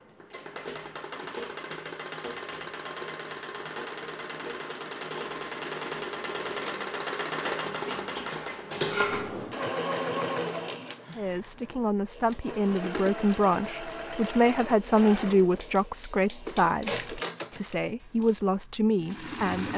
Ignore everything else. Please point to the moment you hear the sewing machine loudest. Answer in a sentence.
The loudest moment of the sewing machine is at 9 seconds.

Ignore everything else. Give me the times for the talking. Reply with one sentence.
The talking can be heard from 11.2 to 19.7 s.